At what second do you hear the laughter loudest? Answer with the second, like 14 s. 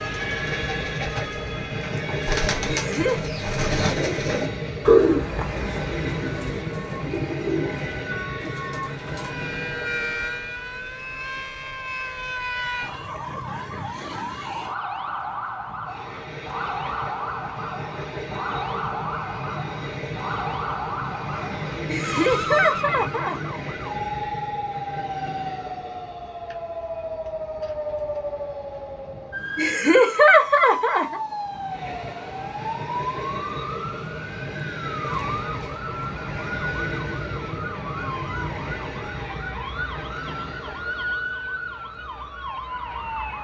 30 s.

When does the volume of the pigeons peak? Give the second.
5 s.